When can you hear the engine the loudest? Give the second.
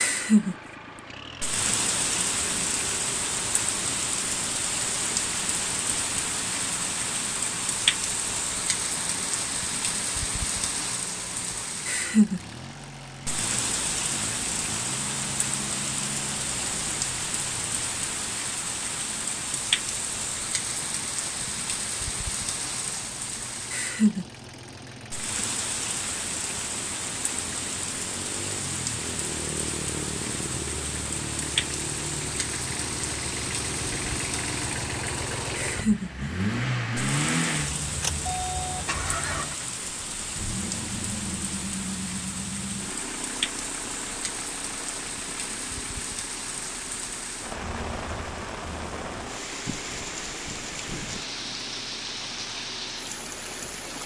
37 s.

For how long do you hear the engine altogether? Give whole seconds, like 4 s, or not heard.
54 s.